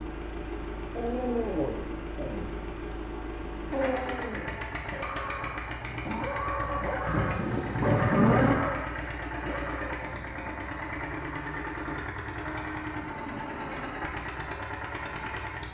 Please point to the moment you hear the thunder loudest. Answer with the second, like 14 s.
8 s.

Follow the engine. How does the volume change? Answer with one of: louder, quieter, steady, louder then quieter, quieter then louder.
steady.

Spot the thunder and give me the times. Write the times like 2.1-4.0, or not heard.
7.0-8.6.